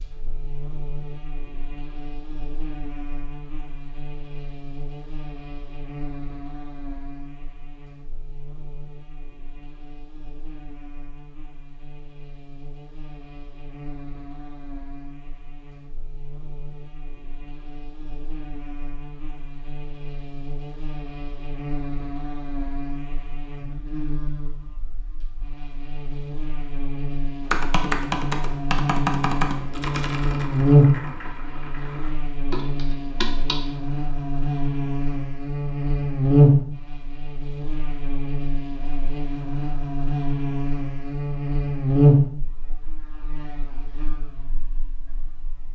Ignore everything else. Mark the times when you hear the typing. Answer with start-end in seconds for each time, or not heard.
27.4-33.6.